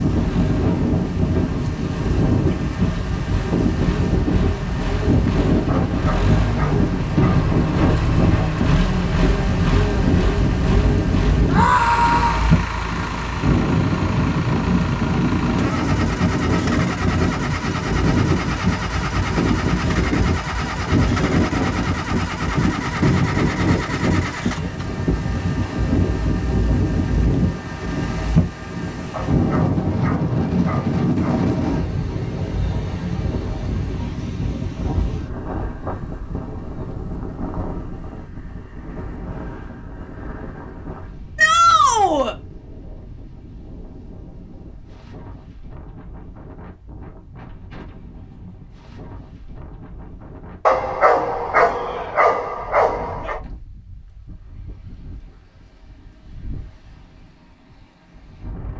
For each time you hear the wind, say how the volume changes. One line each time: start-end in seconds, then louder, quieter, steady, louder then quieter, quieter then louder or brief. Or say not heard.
0.0-58.7 quieter.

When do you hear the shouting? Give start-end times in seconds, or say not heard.
11.4-12.5, 41.4-42.4.